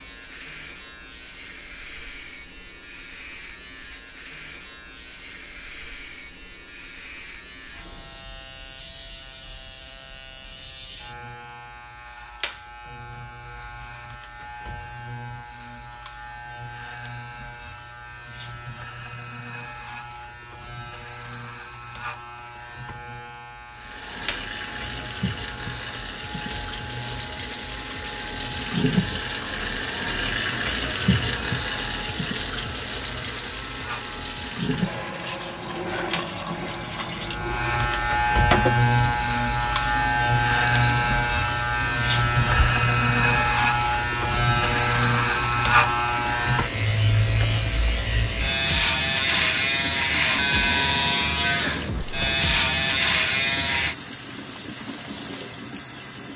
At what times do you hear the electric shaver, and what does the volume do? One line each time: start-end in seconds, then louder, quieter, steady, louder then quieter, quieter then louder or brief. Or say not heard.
0.0-54.0 louder.